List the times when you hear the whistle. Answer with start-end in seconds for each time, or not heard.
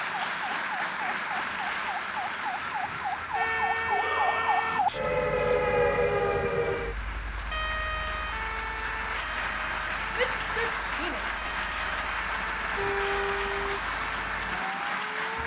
not heard.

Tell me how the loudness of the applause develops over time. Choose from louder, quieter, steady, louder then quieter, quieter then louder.
quieter then louder.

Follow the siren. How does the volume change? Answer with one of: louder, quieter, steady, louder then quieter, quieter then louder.
louder then quieter.